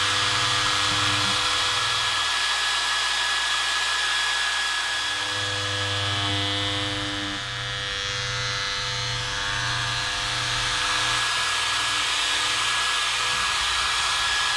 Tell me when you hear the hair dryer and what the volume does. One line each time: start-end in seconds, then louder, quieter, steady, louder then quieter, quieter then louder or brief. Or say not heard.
0.0-14.5 quieter then louder.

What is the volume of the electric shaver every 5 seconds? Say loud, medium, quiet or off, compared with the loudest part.
loud, loud, medium.